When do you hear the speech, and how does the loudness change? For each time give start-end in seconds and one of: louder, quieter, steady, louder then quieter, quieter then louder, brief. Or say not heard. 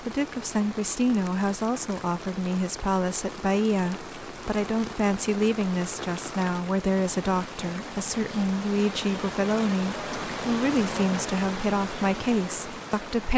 0.0-13.3 steady.